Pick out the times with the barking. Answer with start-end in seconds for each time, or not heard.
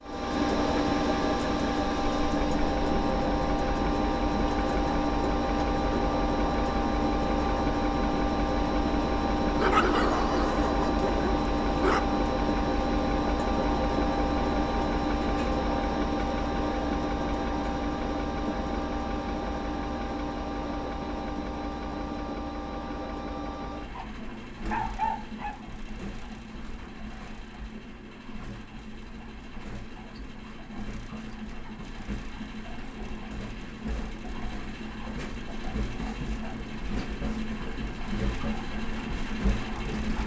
9.6-12.1, 23.9-25.6.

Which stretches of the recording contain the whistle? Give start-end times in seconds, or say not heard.
not heard.